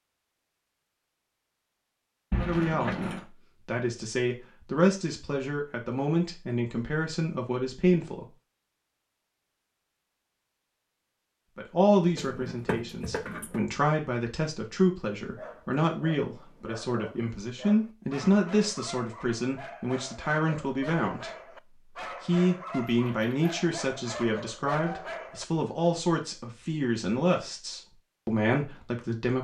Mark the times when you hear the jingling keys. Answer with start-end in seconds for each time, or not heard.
2.3-3.2, 12.2-13.6, 22.9-23.4.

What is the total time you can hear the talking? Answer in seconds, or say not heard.
24 s.